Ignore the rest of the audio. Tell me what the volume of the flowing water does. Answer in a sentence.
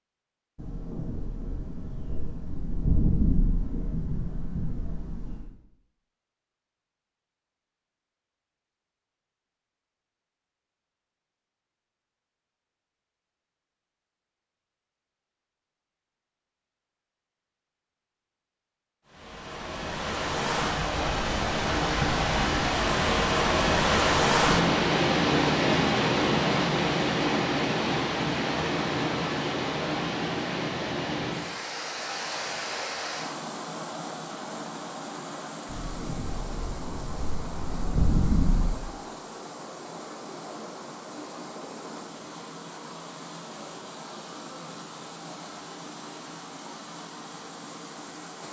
The loudness of the flowing water goes down.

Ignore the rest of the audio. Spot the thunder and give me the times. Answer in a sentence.
The thunder can be heard from 0.6 to 5.5 s and from 35.7 to 38.8 s.